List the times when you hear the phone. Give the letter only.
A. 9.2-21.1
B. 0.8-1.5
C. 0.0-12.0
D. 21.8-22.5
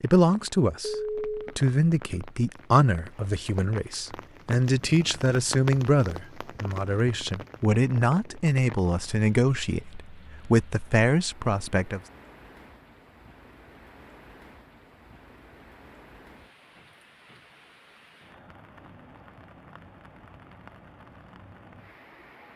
B.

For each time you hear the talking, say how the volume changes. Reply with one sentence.
The talking can be heard from 0.0 to 12.0 s, at a steady volume.